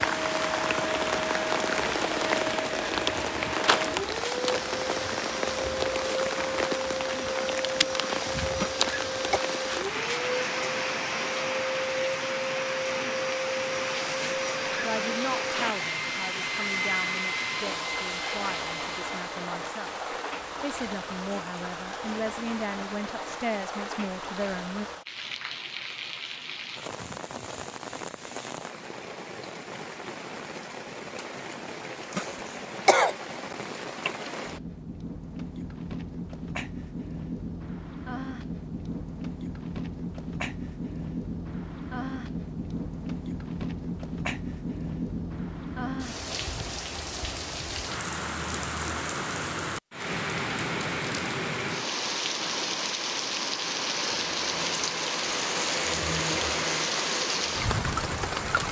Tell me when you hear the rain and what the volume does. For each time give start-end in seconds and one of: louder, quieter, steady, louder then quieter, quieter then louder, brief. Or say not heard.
0.0-58.6 quieter then louder.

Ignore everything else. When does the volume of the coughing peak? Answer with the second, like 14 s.
33 s.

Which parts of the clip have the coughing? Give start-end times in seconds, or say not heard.
8.6-9.4, 32.1-33.1.